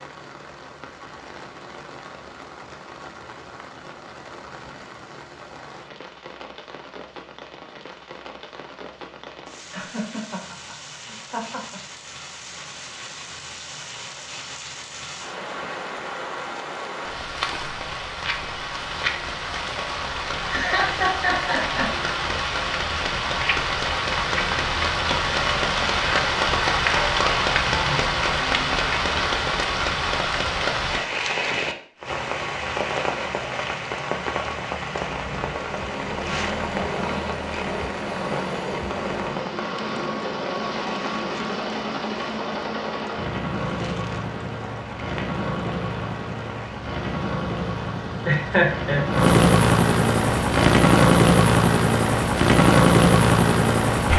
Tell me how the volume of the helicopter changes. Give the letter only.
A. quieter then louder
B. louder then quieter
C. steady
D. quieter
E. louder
E.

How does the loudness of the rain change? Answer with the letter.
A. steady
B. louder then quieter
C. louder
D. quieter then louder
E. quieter
B.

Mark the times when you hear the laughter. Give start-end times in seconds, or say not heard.
9.7-11.8, 20.4-21.9, 48.2-49.0.